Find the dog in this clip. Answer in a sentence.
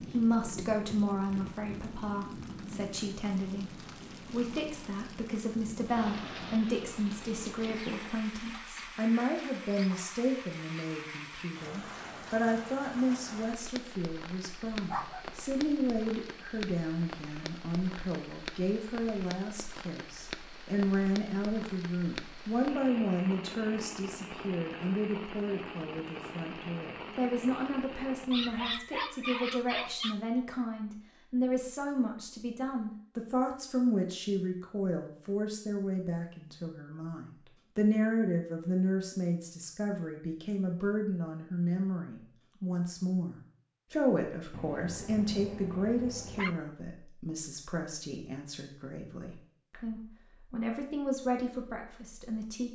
You can hear the dog from 14.7 to 15.8 s, from 28.3 to 30.1 s and from 44.5 to 46.5 s.